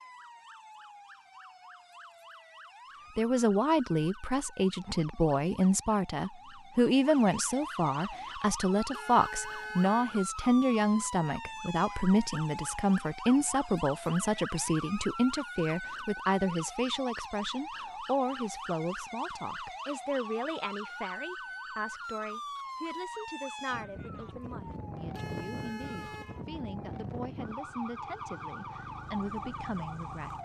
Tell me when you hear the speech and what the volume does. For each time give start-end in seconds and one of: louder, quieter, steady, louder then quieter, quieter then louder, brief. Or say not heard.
3.1-30.3 quieter.